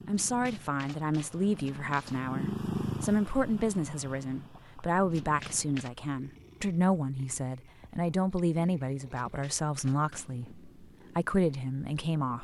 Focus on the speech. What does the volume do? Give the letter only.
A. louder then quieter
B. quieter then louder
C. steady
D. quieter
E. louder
C.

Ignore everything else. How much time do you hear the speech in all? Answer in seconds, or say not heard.
12 s.